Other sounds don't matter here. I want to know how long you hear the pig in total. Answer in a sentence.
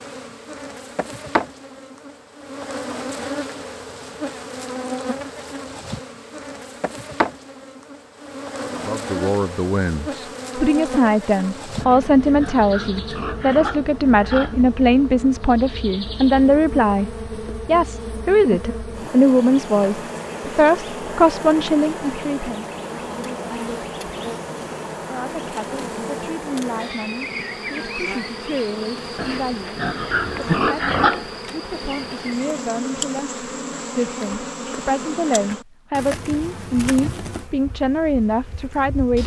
The pig can be heard for 5 seconds in total.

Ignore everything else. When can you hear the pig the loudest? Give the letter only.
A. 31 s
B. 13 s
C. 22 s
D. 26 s
A.